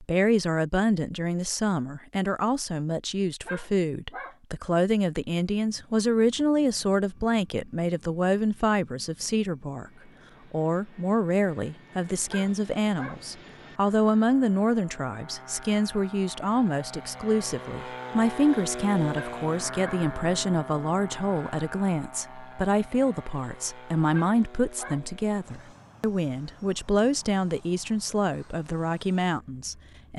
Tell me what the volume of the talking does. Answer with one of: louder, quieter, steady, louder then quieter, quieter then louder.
steady.